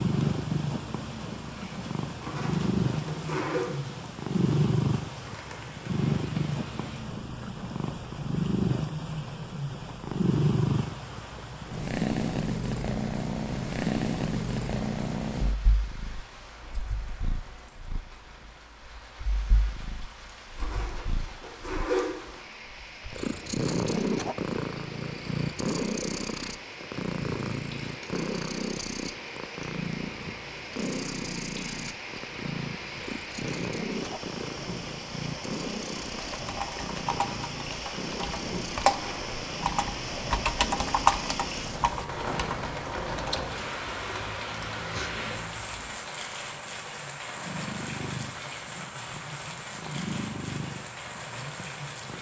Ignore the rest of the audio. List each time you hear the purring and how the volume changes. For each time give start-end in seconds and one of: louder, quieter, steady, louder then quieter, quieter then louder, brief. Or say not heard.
0.0-52.1 quieter.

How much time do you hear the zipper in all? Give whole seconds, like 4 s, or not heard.
4 s.